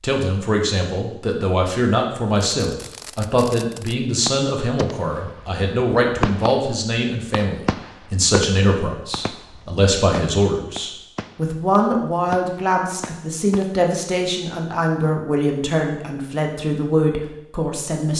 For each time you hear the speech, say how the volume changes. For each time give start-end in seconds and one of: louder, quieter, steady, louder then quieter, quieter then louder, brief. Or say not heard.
0.0-18.1 steady.